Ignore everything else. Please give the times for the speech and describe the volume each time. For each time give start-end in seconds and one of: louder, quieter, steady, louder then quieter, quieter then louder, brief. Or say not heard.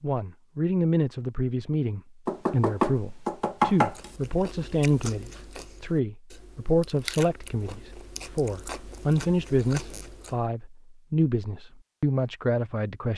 0.0-13.1 steady.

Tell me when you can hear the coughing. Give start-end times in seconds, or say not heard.
not heard.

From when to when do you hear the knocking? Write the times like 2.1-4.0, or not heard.
2.2-4.1.